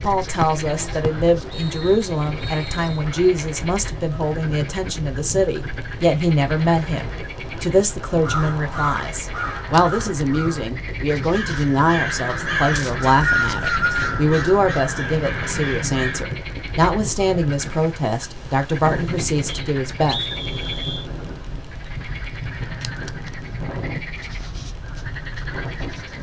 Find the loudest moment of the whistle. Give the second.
13 s.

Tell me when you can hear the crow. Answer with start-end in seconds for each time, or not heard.
8.1-16.3.